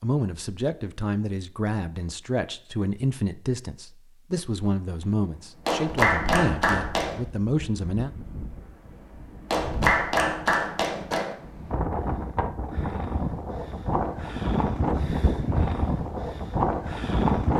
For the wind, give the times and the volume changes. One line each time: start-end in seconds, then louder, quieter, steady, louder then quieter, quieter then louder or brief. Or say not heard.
5.2-17.5 louder.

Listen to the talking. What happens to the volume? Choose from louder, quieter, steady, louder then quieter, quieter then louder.
steady.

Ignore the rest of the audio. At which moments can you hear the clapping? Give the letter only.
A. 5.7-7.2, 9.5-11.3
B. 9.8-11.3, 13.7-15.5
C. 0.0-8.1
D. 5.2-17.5
A.